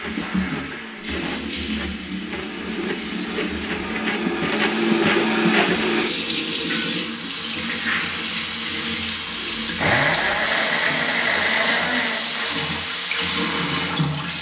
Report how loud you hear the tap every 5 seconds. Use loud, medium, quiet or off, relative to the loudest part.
medium, loud, loud.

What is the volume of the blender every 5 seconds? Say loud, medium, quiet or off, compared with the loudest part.
medium, loud, loud.